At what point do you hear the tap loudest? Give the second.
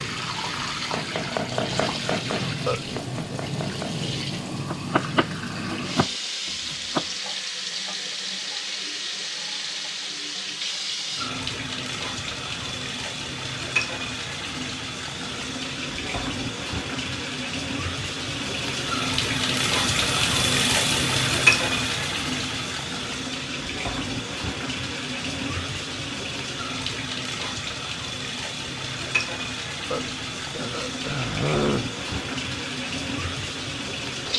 21 s.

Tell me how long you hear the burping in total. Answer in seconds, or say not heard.
3 s.